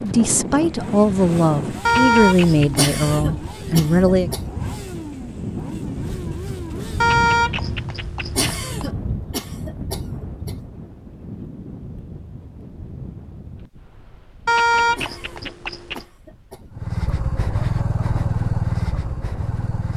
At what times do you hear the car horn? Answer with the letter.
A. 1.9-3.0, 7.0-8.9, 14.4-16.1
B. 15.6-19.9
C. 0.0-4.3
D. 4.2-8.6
A.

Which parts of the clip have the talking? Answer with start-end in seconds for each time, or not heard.
0.0-4.3.